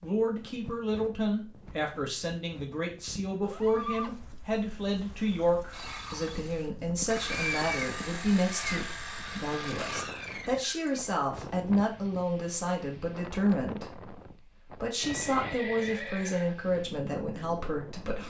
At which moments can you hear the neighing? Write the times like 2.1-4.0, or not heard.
3.4-4.2, 7.0-8.9, 14.9-16.6.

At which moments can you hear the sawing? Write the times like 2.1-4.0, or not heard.
5.7-10.9.